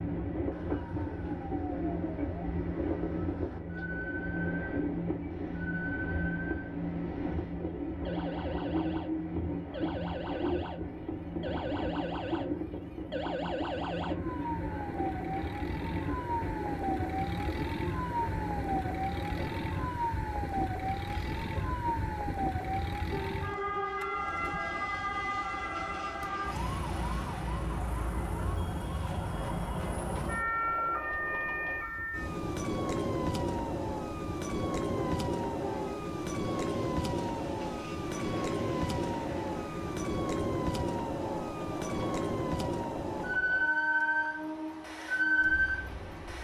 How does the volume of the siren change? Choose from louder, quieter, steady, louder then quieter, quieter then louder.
louder.